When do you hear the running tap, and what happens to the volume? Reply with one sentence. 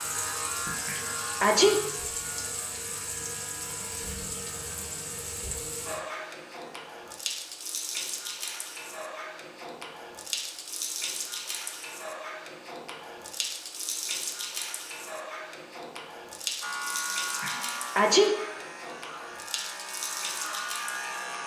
The running tap can be heard from 0.0 to 21.4 s, at a steady volume.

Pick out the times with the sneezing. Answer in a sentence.
The sneezing can be heard from 0.8 to 1.9 s and from 17.4 to 18.5 s.